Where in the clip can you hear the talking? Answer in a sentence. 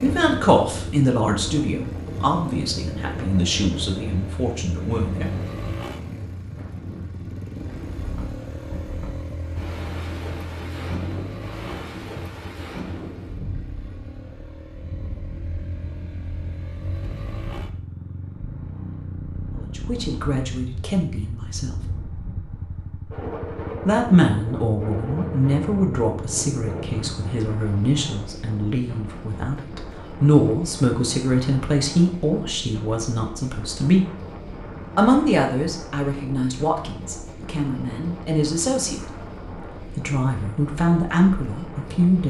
The talking can be heard from 0.0 to 5.3 s, from 19.6 to 21.8 s, from 23.9 to 34.1 s, from 35.0 to 39.0 s and from 40.0 to 42.2 s.